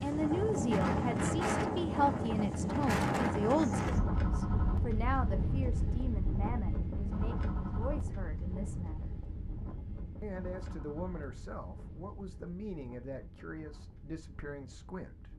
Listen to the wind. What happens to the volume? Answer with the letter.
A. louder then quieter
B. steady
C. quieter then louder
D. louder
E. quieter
E.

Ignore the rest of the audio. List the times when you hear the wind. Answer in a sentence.
The wind can be heard from 0.0 to 15.3 s.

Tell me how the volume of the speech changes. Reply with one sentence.
The loudness of the speech goes down.